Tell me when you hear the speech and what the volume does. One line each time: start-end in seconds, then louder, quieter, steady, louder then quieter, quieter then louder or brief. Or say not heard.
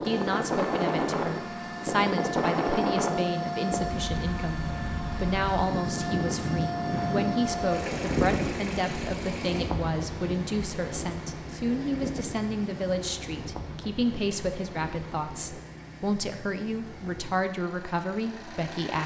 0.0-19.0 steady.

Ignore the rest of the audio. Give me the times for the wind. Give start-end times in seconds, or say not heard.
0.0-15.6.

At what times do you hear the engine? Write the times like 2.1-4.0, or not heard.
0.0-19.0.